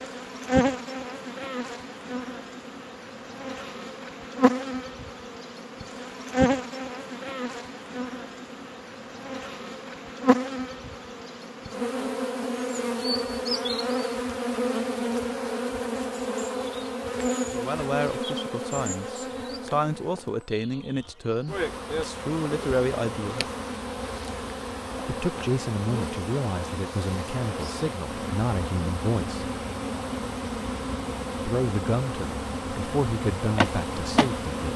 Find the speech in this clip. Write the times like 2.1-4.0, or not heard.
17.4-23.4, 25.1-29.5, 31.4-34.7.